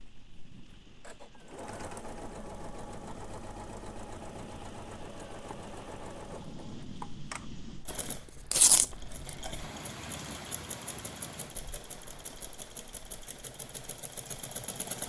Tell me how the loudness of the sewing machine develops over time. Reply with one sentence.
The volume of the sewing machine stays about the same.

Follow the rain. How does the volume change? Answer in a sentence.
The loudness of the rain goes up, then down.